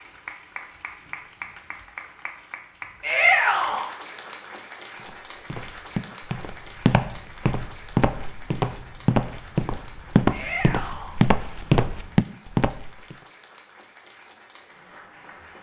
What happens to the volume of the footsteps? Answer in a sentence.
The volume of the footsteps goes up.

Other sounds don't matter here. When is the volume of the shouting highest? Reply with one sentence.
The volume of the shouting peaks at 3 seconds.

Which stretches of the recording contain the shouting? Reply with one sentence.
You can hear the shouting from 3.0 to 3.9 s and from 10.3 to 11.2 s.